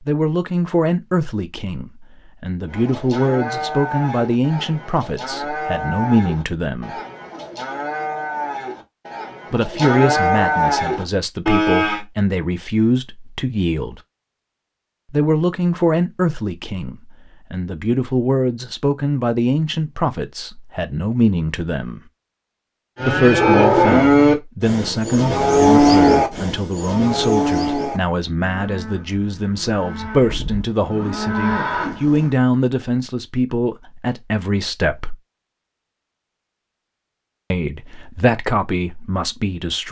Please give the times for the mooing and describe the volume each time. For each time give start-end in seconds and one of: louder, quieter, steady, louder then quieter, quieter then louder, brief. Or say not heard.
2.6-12.1 louder
22.9-32.4 quieter then louder.